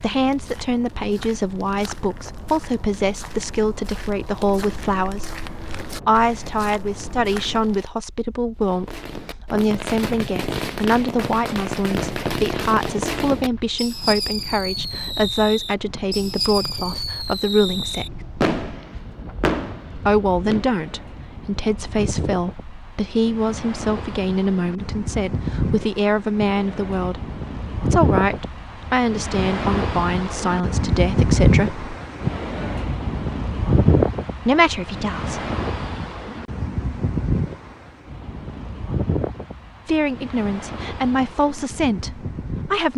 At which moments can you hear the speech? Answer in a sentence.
You can hear the speech from 0.0 to 18.2 s, from 19.9 to 31.9 s, from 34.5 to 35.4 s and from 39.9 to 42.9 s.